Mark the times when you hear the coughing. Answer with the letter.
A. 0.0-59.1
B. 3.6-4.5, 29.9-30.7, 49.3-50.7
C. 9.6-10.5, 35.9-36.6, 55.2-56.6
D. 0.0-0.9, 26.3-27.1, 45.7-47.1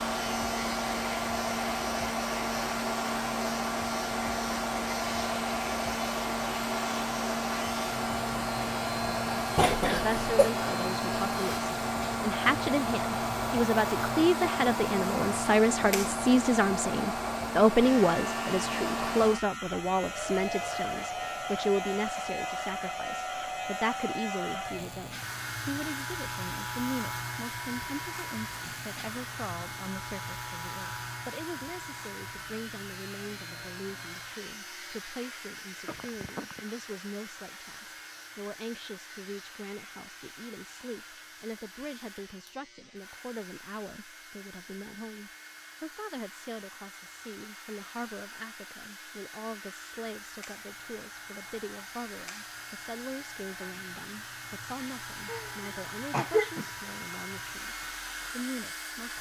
C.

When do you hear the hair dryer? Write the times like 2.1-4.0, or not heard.
0.0-59.1.